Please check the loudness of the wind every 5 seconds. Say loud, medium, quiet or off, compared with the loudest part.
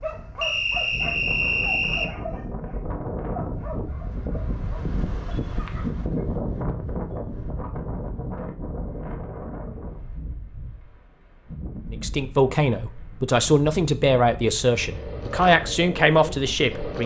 loud, loud, medium, medium.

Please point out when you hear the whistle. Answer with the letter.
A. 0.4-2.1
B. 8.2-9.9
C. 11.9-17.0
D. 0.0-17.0
A.